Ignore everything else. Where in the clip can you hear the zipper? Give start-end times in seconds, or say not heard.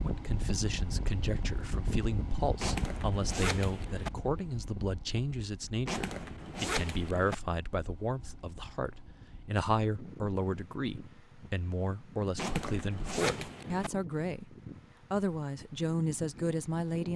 2.6-4.1, 5.8-7.3, 12.3-13.9.